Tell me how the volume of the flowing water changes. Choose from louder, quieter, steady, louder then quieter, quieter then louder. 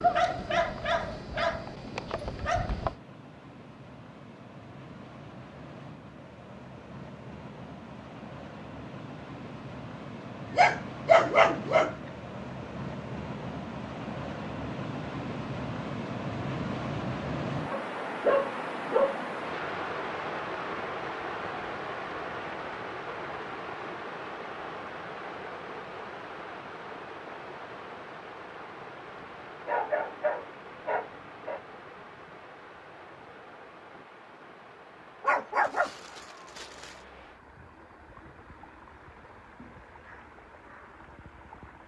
louder then quieter.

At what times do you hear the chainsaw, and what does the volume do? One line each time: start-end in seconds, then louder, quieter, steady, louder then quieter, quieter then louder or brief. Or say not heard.
not heard.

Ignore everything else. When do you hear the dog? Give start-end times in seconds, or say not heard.
0.0-3.0, 10.5-11.9, 17.7-19.2, 29.6-31.6, 35.2-37.0.